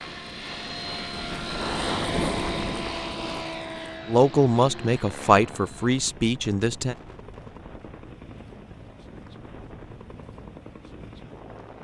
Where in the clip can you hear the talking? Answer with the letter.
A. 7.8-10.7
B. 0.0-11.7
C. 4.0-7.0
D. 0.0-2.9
C.